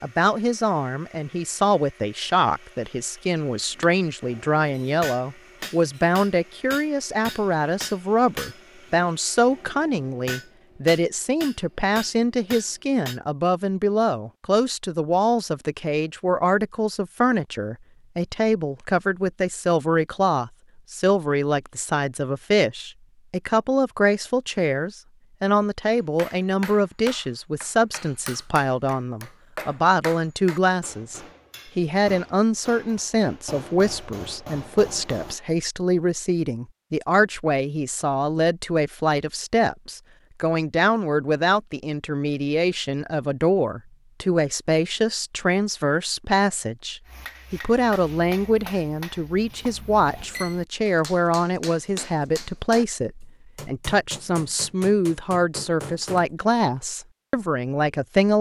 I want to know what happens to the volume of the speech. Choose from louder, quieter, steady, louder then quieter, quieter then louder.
steady.